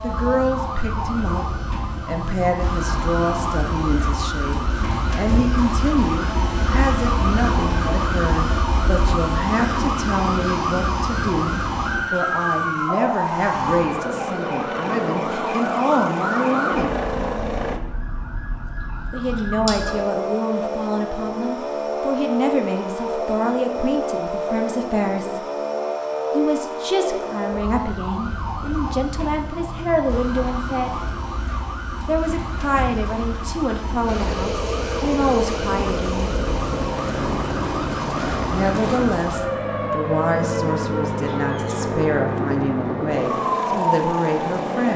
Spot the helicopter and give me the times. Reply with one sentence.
The helicopter can be heard from 13.6 to 17.8 s and from 34.0 to 44.9 s.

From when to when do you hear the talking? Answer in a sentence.
The talking can be heard from 0.0 to 16.9 s, from 19.1 to 25.4 s, from 26.3 to 31.0 s, from 32.0 to 36.4 s and from 38.5 to 44.9 s.